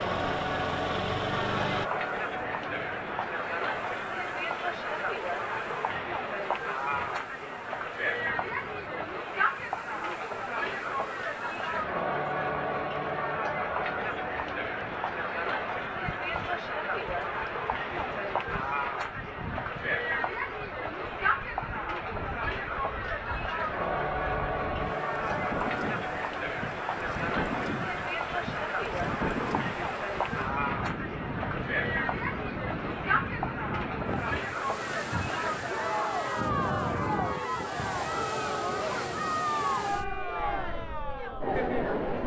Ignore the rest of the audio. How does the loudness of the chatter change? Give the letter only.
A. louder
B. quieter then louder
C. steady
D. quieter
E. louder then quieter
C.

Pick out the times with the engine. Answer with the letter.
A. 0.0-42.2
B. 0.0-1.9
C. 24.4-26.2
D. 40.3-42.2
B.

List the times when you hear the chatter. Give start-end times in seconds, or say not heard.
0.0-42.2.